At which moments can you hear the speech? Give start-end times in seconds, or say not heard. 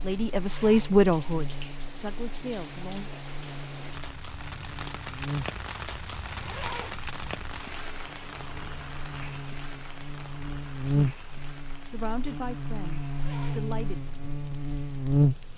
0.0-3.1, 10.8-14.1.